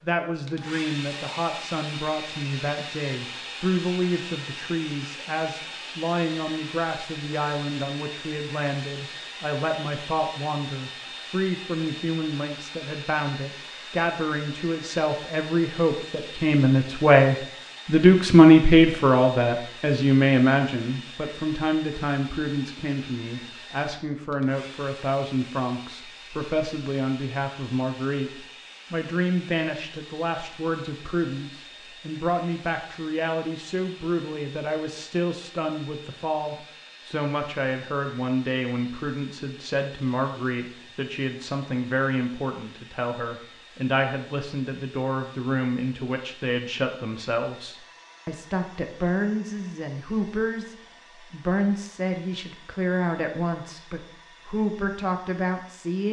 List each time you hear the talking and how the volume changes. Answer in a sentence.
You can hear the talking from 0.0 to 56.0 s, getting louder then quieter.